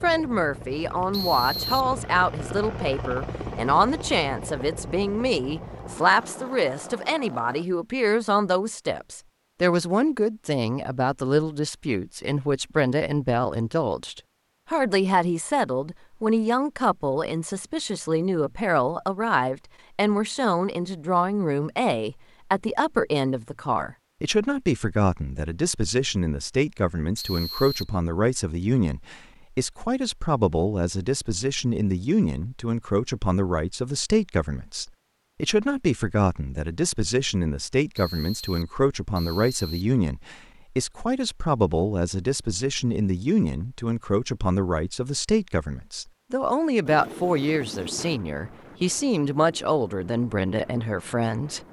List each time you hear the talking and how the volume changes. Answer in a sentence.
The talking can be heard from 0.0 to 51.6 s, at a steady volume.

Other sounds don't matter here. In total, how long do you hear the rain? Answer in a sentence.
You can't hear the rain here.